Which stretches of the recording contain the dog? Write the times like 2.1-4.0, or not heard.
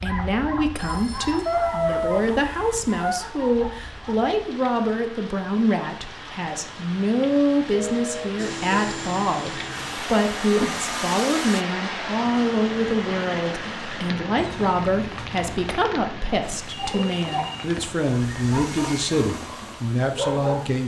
0.0-4.3, 18.1-20.8.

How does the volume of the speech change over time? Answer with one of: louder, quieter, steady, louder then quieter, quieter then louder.
steady.